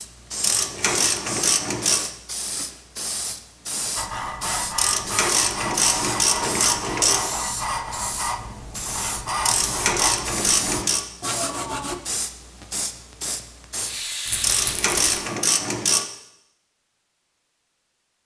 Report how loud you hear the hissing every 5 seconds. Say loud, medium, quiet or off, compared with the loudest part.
loud, loud, loud, off.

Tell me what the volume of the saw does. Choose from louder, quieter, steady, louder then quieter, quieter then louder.
steady.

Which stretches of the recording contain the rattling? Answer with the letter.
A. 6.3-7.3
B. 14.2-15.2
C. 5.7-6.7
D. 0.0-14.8
B.